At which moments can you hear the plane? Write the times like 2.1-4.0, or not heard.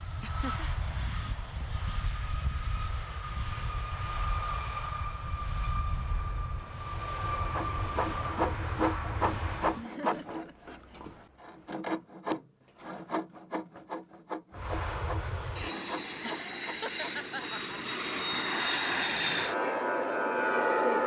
0.0-9.8, 14.6-21.0.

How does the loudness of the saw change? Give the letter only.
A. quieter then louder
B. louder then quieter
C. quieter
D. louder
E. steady
C.